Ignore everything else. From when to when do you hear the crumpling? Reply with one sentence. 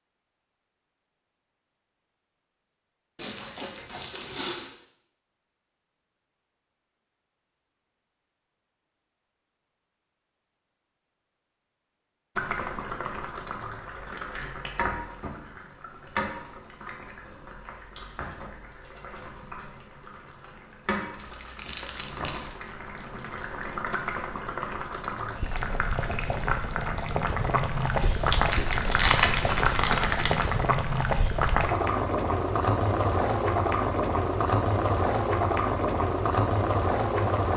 The crumpling can be heard from 3.1 to 4.7 s, from 21.1 to 22.6 s and from 28.0 to 30.6 s.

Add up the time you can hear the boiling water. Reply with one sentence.
The boiling water can be heard for 25 seconds in total.